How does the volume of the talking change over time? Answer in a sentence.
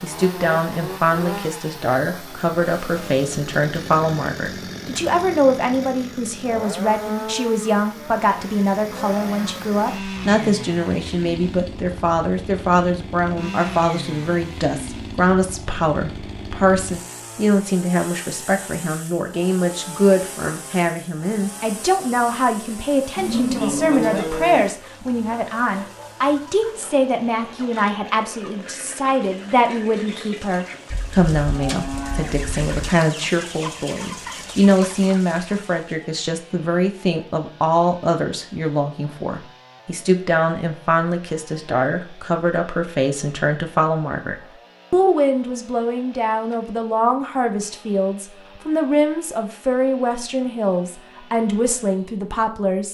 The volume of the talking stays about the same.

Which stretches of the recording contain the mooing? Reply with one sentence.
The mooing can be heard from 23.1 to 24.8 s and from 30.9 to 32.9 s.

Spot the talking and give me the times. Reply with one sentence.
The talking can be heard from 0.0 to 52.8 s.